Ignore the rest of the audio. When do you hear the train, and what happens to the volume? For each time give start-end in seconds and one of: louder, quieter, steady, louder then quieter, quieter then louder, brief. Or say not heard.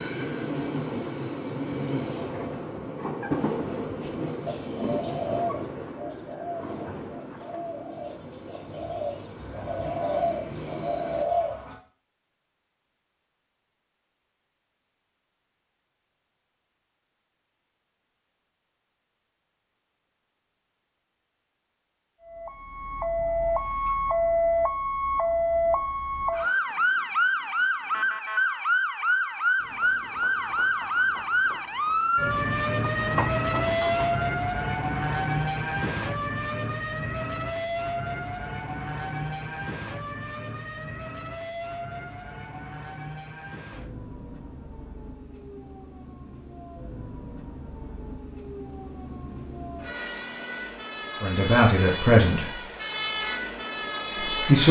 0.0-11.2 quieter
29.6-34.2 louder.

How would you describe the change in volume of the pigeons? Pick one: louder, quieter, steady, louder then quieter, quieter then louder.
quieter then louder.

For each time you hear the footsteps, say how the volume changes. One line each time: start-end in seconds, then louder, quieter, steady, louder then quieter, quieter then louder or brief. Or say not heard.
not heard.